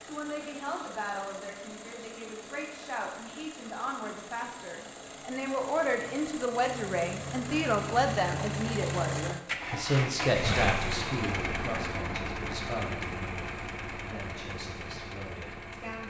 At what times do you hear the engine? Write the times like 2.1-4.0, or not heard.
0.0-16.0.